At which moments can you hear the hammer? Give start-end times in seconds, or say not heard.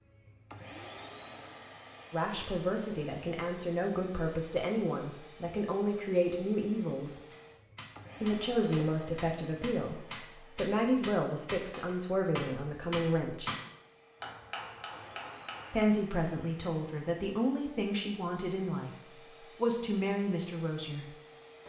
7.3-15.8.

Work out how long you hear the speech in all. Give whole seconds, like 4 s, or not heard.
15 s.